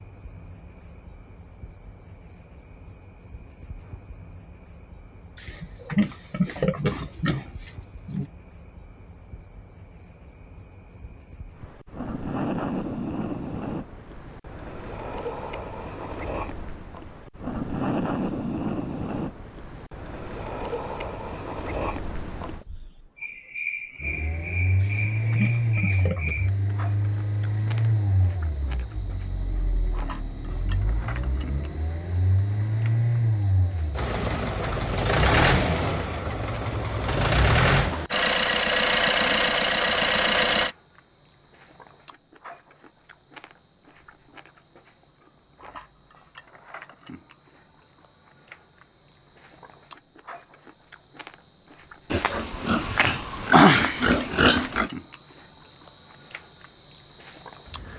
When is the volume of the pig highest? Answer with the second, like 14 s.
54 s.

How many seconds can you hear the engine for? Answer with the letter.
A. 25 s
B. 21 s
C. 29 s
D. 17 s
D.